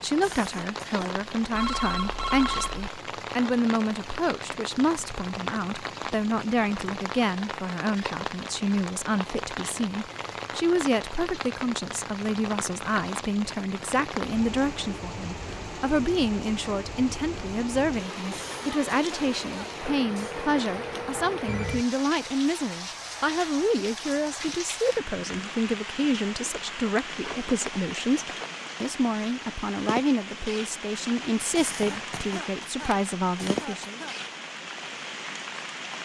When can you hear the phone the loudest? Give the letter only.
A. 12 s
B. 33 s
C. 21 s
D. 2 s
D.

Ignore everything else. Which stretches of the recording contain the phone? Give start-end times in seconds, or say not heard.
1.5-2.9, 20.0-21.9, 31.8-33.6.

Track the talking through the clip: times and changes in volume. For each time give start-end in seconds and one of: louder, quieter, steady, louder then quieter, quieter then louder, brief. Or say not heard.
0.0-34.0 steady.